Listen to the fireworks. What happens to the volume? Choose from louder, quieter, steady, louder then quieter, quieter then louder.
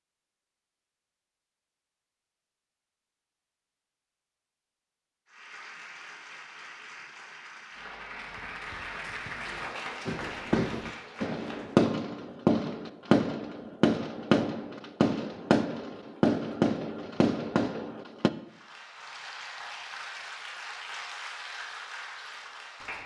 steady.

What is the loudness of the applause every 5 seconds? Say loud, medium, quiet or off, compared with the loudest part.
off, loud, loud, loud, loud.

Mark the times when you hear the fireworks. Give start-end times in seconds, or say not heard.
10.1-18.3.